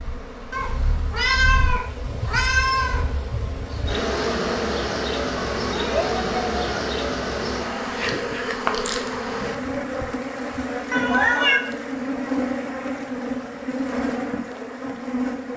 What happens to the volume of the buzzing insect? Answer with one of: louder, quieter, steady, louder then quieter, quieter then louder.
louder.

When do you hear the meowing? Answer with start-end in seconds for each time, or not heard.
0.5-3.0, 5.6-6.6, 10.9-11.6.